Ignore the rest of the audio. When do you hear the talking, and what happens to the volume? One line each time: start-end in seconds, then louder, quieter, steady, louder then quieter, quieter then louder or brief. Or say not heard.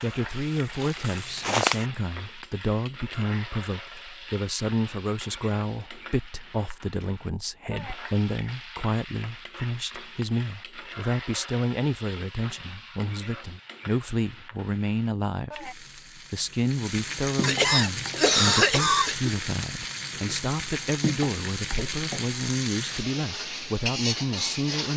0.0-24.9 steady.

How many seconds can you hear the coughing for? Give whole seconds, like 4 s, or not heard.
2 s.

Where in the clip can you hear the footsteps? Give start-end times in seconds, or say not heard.
0.0-1.9.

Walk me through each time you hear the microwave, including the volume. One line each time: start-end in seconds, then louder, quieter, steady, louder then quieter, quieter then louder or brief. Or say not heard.
not heard.